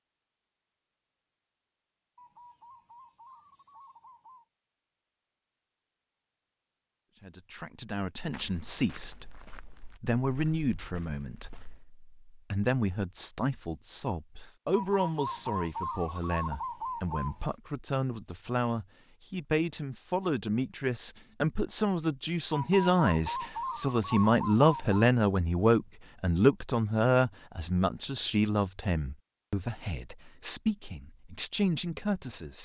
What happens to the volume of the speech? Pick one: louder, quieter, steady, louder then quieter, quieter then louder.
louder then quieter.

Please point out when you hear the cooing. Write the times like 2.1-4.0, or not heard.
2.1-4.5, 14.7-17.5, 22.5-25.0.